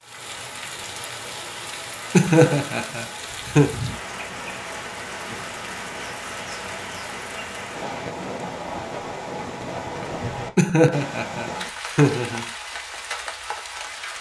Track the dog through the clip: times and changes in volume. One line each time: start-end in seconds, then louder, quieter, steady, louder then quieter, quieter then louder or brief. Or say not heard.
not heard.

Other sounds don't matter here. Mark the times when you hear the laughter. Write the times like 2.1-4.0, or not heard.
2.1-3.8, 10.6-12.4.